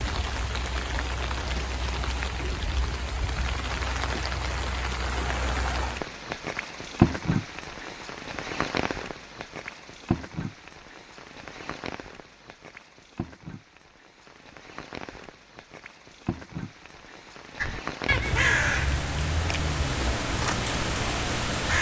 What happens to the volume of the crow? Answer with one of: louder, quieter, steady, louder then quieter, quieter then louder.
quieter.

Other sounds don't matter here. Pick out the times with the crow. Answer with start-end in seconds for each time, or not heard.
17.6-21.7.